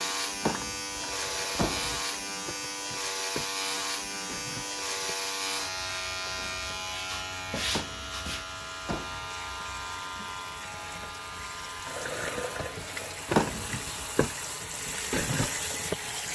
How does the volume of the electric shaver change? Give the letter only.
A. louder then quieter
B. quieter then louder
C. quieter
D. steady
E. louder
C.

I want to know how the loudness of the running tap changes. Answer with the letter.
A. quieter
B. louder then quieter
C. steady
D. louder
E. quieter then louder
D.